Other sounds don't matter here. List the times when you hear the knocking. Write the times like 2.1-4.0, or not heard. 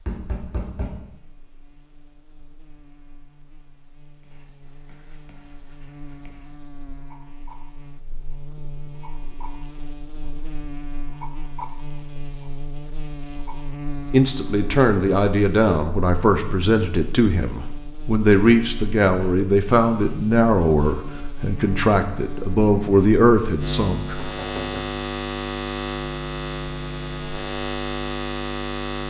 0.1-1.0, 24.1-24.9.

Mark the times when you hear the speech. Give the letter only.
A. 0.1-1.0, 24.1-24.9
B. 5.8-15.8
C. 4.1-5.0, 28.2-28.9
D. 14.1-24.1
D.